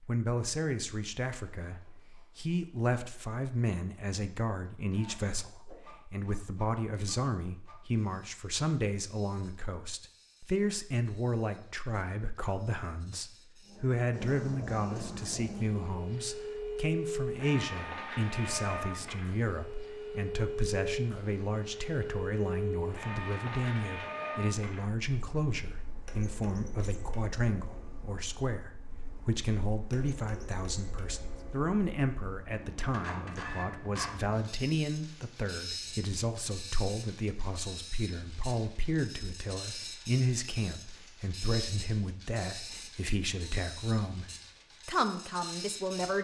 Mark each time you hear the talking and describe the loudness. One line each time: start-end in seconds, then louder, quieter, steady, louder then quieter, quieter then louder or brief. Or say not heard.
0.0-46.1 steady.